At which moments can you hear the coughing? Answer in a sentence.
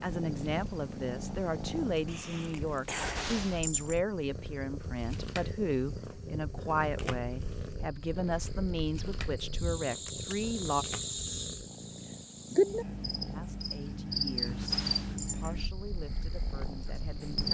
You can hear the coughing from 2.0 to 3.3 s.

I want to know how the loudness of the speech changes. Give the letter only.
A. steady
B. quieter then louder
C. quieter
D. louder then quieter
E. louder
C.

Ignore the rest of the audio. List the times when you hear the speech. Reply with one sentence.
You can hear the speech from 0.0 to 10.8 s and from 13.3 to 17.5 s.